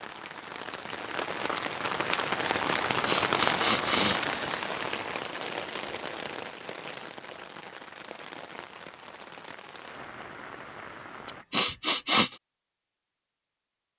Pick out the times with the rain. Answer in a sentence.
You can hear the rain from 0.0 to 11.4 s.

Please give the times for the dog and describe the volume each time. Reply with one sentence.
You can't hear the dog here.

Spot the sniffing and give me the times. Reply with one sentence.
You can hear the sniffing from 3.0 to 4.7 s and from 11.5 to 12.3 s.